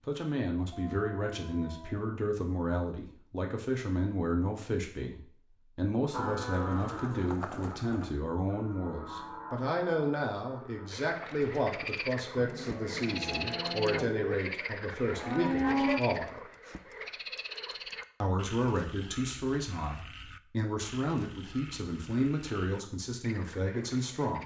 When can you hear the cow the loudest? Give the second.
16 s.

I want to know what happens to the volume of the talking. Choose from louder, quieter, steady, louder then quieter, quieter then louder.
steady.